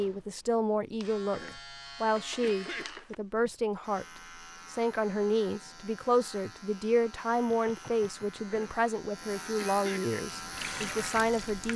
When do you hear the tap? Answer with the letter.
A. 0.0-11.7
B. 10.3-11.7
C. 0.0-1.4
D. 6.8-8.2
B.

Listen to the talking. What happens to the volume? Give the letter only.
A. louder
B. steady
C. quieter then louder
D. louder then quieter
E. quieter
B.